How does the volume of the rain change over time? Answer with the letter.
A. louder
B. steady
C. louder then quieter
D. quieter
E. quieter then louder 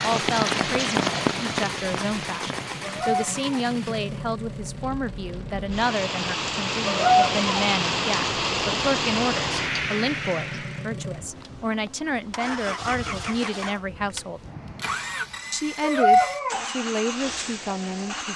E.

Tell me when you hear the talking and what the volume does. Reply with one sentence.
The talking can be heard from 0.0 to 14.4 s, at a steady volume; and briefly from 15.5 to 18.3 s.